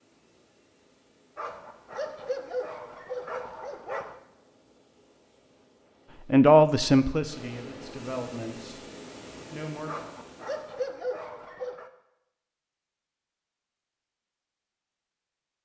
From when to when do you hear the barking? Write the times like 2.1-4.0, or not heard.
1.4-4.2, 9.8-11.9.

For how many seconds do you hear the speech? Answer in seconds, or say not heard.
3 s.